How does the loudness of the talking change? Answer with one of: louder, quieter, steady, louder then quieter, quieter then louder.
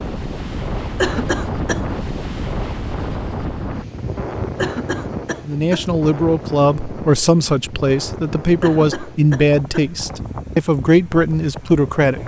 steady.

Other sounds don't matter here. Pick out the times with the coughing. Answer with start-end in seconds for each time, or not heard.
0.9-1.9, 4.5-5.8, 8.6-9.9.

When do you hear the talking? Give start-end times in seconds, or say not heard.
5.5-12.2.